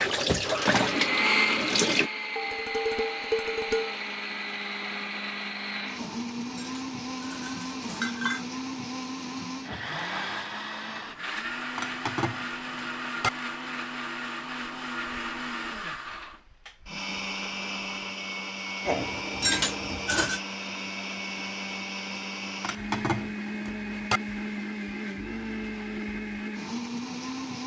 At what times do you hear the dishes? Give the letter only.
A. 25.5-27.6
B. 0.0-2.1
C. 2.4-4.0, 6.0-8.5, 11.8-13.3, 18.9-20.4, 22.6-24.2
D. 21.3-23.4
C.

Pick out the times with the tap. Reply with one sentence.
The tap can be heard from 0.0 to 2.1 s.